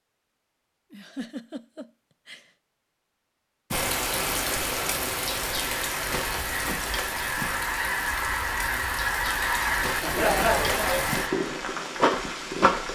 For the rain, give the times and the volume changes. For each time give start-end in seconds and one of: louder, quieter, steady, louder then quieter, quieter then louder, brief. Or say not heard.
3.7-12.9 quieter then louder.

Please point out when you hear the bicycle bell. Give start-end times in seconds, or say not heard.
not heard.